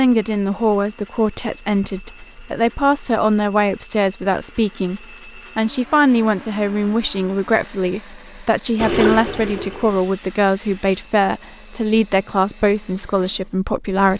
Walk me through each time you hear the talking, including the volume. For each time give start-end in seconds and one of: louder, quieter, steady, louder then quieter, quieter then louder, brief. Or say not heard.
0.0-14.1 steady.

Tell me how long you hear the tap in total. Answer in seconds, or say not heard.
2 s.